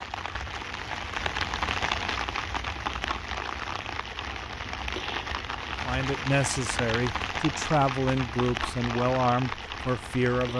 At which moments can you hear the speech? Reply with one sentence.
The speech can be heard from 5.8 to 10.5 s.